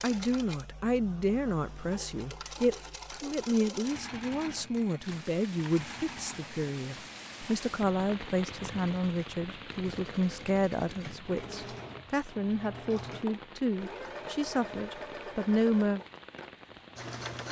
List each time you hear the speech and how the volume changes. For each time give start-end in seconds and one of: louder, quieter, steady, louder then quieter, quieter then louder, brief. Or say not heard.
0.0-16.0 steady.